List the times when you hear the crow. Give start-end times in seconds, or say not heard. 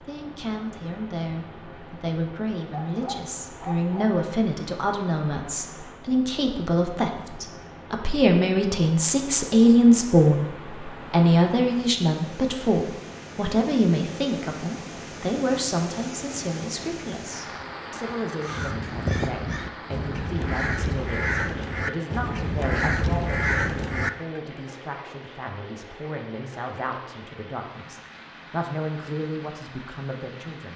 18.4-24.4.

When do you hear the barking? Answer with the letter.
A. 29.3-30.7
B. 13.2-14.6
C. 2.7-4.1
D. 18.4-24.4
C.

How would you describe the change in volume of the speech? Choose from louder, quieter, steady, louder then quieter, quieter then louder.
louder then quieter.